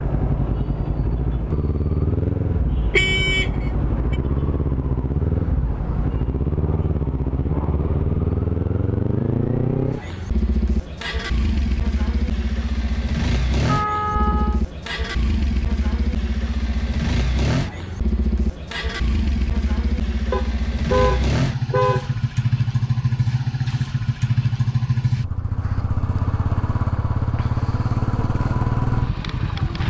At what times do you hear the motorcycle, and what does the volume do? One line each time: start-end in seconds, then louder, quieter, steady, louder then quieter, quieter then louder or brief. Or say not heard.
0.0-29.8 steady.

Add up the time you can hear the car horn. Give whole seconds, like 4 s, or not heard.
4 s.